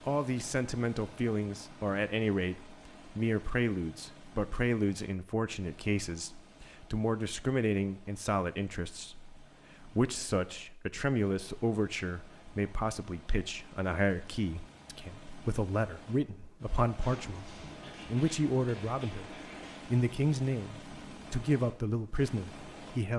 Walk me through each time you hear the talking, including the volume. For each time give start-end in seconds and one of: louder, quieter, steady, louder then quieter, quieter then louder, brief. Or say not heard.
0.1-23.1 steady.